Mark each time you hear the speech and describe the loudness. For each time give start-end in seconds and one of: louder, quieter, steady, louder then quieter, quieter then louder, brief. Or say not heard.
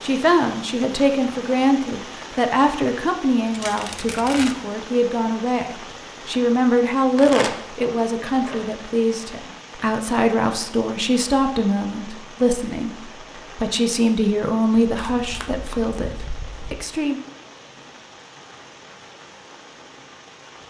0.0-17.2 steady.